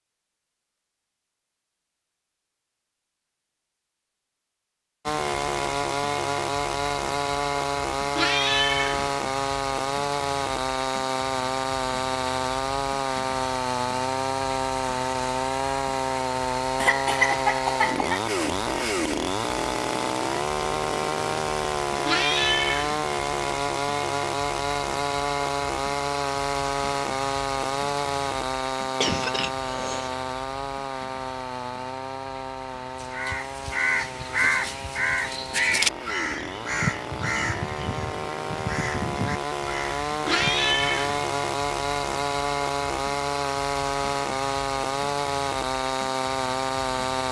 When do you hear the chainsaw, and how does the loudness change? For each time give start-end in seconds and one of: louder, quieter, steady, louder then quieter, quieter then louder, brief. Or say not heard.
5.0-47.2 quieter then louder.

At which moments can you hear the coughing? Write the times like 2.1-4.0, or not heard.
16.8-18.2, 29.0-30.1.